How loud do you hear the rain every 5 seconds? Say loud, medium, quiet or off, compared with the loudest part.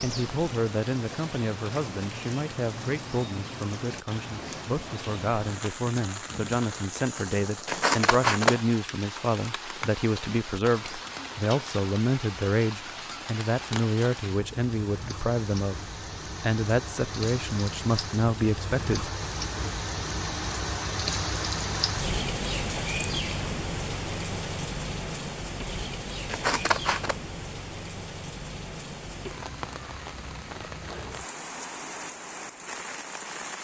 medium, medium, medium, medium, loud, medium, medium.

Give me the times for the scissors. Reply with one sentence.
The scissors can be heard from 7.7 to 8.6 s and from 26.2 to 27.1 s.